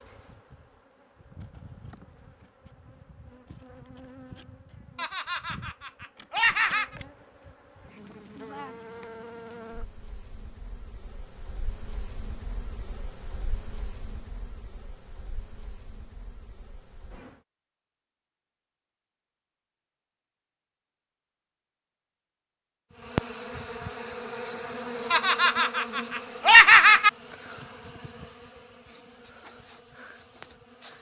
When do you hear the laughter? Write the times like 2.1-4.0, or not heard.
5.0-7.0, 25.1-27.1.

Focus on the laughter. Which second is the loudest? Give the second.
27 s.